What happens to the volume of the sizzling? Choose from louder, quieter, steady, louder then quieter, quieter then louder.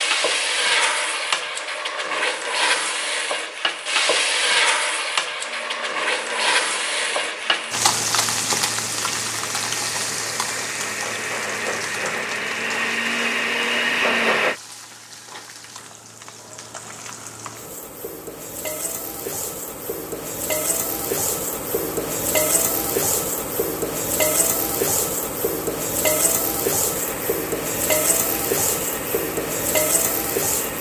quieter then louder.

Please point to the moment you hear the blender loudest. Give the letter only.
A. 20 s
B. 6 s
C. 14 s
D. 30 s
C.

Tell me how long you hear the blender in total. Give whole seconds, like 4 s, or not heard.
13 s.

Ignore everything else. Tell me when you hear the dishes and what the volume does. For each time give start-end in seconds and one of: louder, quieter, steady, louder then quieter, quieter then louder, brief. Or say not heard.
not heard.